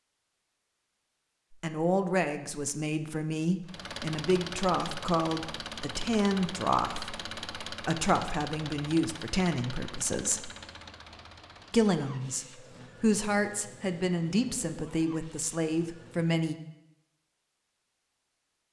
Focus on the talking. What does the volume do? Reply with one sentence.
The volume of the talking stays about the same.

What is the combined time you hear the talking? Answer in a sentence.
The talking can be heard for 14 seconds in total.